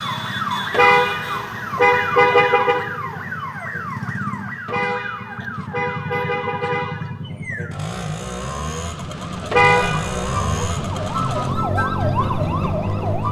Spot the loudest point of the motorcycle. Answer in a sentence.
The volume of the motorcycle peaks at 10 seconds.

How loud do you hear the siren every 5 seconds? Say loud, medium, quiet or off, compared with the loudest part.
loud, medium, loud.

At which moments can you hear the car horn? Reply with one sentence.
You can hear the car horn from 0.7 to 2.8 s, from 4.7 to 7.0 s and from 9.5 to 10.1 s.